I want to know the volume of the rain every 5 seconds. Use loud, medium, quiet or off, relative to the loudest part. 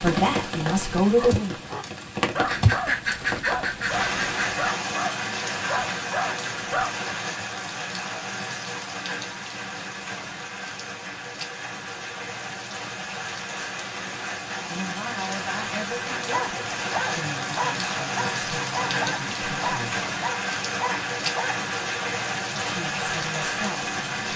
loud, loud, medium, loud, loud.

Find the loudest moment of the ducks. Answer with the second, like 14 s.
3 s.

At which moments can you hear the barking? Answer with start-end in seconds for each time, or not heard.
1.1-7.0, 16.3-21.6.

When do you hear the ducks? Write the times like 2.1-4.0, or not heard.
2.5-4.7.